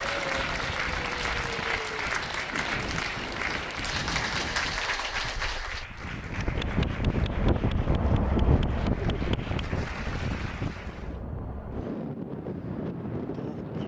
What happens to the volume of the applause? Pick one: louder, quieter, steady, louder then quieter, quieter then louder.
quieter.